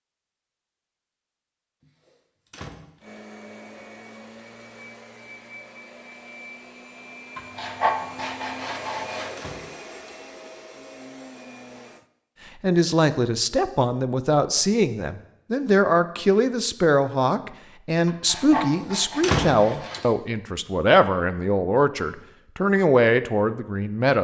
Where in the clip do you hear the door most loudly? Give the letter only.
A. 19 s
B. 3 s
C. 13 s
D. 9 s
A.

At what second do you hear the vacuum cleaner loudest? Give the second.
9 s.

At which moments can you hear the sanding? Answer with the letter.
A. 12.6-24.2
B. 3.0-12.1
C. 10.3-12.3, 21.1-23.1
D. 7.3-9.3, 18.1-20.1
D.